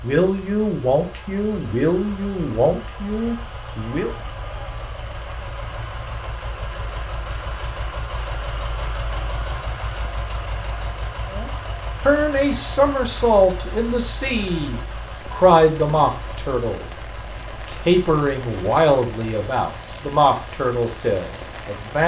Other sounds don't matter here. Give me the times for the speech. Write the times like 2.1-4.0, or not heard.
0.0-4.1, 11.3-22.0.